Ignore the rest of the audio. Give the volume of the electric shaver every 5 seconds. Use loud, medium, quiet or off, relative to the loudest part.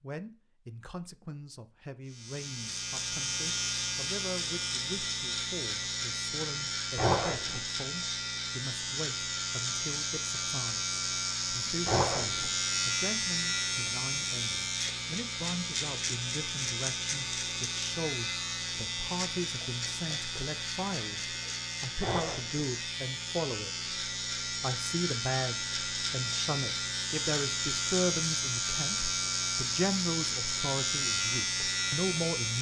loud, loud, loud, loud, medium, loud, loud.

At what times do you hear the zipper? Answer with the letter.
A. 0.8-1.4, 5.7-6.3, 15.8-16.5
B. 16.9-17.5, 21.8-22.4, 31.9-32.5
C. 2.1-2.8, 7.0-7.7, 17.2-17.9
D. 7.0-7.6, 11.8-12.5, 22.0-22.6
D.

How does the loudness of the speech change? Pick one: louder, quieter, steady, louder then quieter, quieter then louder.
louder.